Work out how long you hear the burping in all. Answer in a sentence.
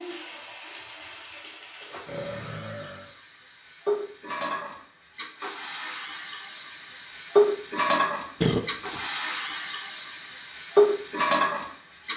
The burping can be heard for 2 seconds in total.